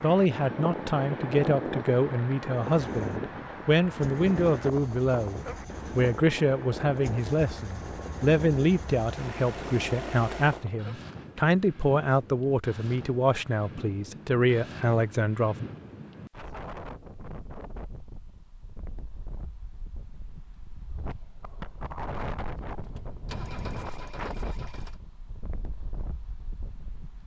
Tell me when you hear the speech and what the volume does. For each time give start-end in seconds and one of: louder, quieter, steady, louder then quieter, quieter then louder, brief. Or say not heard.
0.0-15.7 steady.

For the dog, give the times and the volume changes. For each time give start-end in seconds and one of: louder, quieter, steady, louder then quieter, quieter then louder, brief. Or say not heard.
not heard.